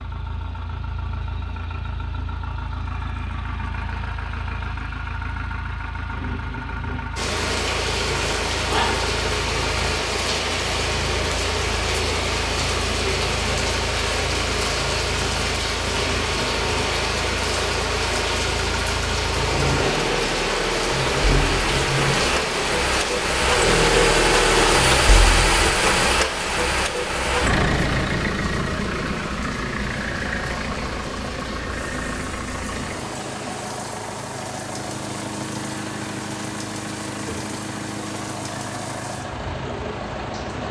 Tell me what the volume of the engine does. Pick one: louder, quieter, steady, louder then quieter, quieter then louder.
louder then quieter.